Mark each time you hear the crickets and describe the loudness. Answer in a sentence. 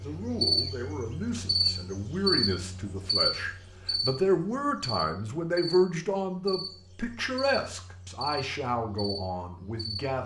The crickets can be heard from 0.0 to 10.2 s, getting quieter.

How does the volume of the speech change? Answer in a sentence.
The loudness of the speech goes up, then down.